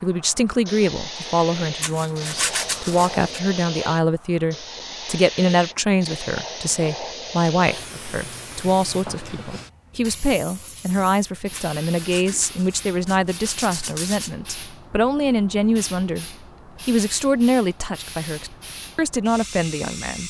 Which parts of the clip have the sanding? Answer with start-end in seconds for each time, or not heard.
1.8-3.4, 11.5-14.3.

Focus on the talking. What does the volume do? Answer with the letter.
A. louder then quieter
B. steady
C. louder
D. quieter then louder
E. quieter
B.